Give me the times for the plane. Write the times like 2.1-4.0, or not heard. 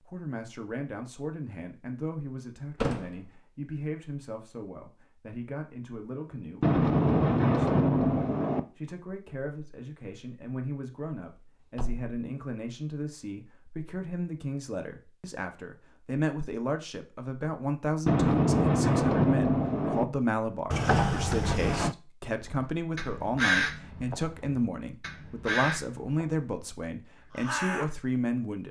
not heard.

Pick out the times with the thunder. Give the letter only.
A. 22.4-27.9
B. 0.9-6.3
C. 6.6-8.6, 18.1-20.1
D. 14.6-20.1
C.